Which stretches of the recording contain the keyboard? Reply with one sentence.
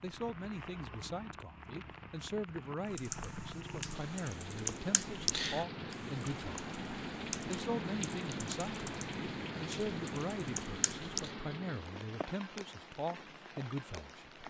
You can hear the keyboard from 2.9 to 11.3 s.